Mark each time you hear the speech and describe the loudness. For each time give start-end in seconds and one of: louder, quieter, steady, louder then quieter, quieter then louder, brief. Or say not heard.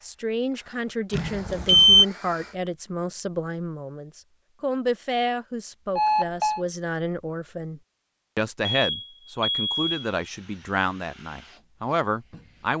0.0-12.7 steady.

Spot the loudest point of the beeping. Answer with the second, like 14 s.
2 s.